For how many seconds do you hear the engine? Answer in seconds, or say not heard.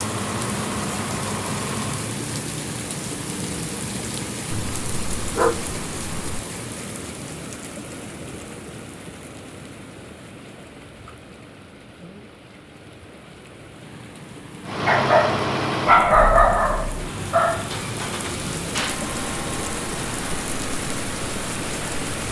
10 s.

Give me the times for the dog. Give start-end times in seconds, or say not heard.
4.5-6.4, 14.8-17.7.